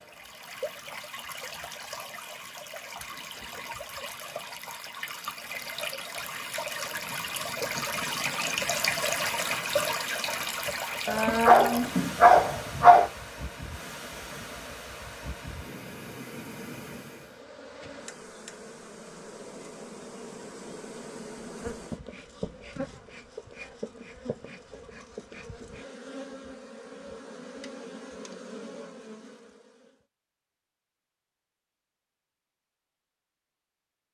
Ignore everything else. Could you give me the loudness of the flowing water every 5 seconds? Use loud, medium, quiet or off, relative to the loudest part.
medium, loud, medium, medium, off, off, off.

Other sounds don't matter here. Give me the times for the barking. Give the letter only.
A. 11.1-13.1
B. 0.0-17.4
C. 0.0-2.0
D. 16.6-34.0
A.